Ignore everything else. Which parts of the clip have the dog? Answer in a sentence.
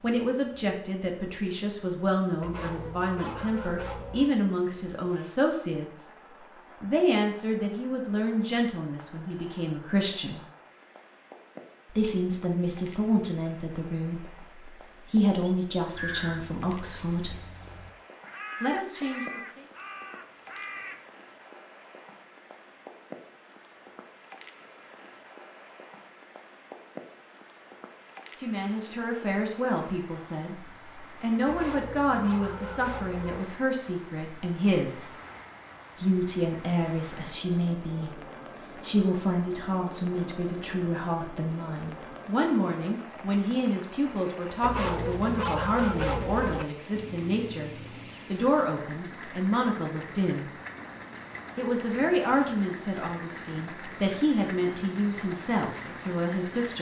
The dog can be heard from 2.4 to 4.3 s, from 31.4 to 33.4 s and from 44.6 to 46.6 s.